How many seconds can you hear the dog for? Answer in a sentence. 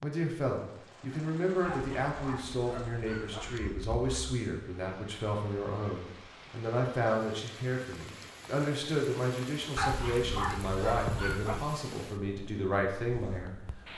You can hear the dog for 5 seconds altogether.